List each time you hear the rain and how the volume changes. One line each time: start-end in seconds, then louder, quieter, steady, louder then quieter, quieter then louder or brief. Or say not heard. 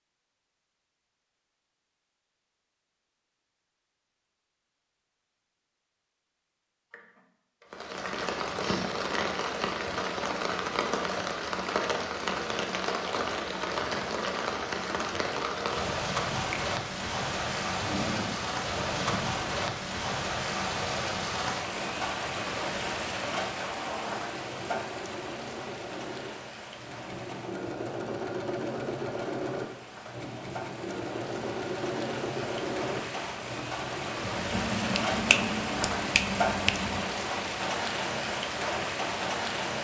7.7-39.8 quieter then louder.